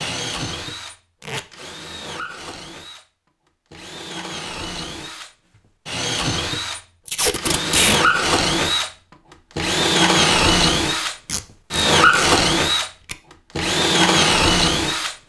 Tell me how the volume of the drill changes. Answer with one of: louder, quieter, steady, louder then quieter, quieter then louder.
louder.